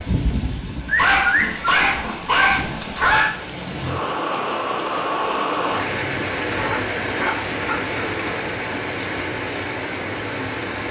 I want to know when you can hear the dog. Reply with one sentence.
You can hear the dog from 0.8 to 3.3 s and from 6.5 to 8.4 s.